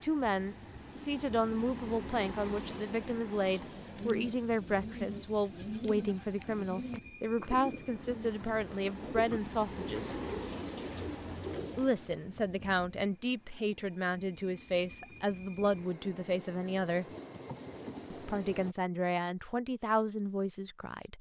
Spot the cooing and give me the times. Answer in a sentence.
You can hear the cooing from 3.4 to 11.9 s.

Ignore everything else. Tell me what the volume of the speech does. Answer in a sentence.
The volume of the speech stays about the same.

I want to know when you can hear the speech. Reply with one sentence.
The speech can be heard from 0.0 to 10.2 s, from 11.8 to 17.1 s and from 18.1 to 21.1 s.